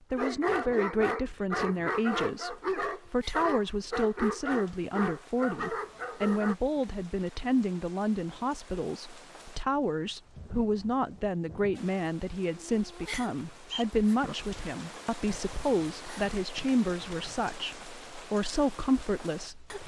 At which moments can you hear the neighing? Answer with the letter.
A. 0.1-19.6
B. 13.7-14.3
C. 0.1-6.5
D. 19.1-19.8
B.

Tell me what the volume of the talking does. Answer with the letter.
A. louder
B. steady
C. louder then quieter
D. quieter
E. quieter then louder
B.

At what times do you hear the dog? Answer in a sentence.
The dog can be heard from 0.1 to 6.5 s.